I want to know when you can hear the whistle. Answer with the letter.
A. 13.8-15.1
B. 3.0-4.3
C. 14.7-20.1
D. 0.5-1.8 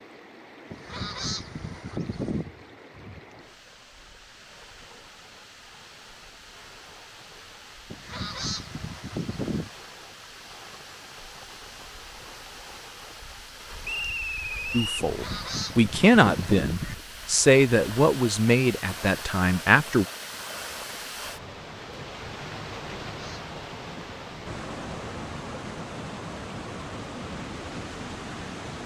A.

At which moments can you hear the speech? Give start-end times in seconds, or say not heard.
14.7-20.1.